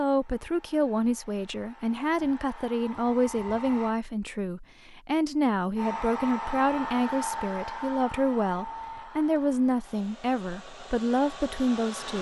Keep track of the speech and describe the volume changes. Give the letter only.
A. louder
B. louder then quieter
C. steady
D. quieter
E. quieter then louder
C.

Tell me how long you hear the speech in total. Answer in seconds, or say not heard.
12 s.